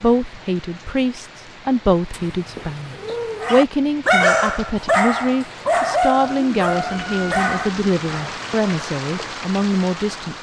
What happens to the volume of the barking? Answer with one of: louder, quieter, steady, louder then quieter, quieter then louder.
quieter.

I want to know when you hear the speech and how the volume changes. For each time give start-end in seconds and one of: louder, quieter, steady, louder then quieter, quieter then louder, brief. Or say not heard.
0.0-10.3 steady.